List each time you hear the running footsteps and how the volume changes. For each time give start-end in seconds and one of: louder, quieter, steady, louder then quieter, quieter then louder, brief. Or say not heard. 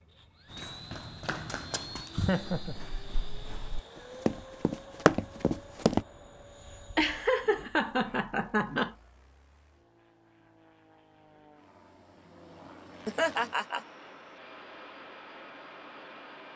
0.5-6.0 quieter then louder.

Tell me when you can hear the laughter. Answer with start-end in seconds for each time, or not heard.
2.1-2.8, 7.0-8.9, 13.1-13.8.